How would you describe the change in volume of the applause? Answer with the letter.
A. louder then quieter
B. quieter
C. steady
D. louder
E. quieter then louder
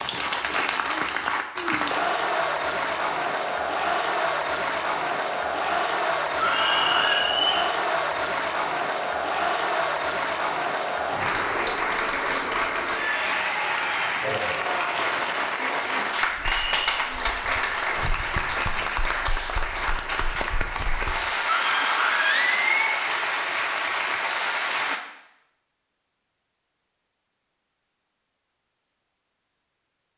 C.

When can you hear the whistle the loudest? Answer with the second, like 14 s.
7 s.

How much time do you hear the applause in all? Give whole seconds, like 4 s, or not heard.
25 s.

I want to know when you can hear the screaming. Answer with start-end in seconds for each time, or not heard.
6.3-7.2, 21.4-23.1.